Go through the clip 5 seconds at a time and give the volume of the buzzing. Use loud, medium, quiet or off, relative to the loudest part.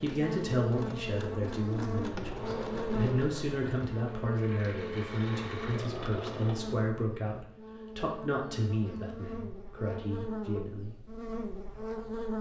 loud, medium, loud.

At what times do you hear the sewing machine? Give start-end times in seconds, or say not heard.
0.0-7.5.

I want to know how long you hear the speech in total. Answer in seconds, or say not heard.
11 s.